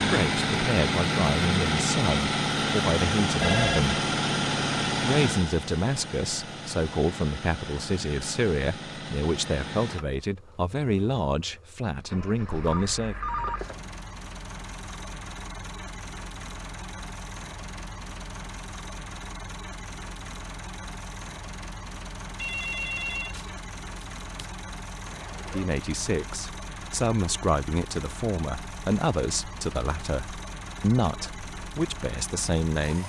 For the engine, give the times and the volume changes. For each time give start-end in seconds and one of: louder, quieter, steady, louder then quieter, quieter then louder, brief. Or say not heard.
0.0-33.0 quieter.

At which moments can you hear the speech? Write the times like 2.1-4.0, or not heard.
0.1-4.0, 5.0-13.2, 25.4-33.0.